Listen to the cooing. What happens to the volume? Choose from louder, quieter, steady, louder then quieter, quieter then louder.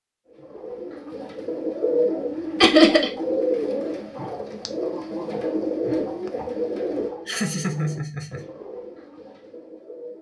quieter.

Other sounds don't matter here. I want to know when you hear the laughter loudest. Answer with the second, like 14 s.
3 s.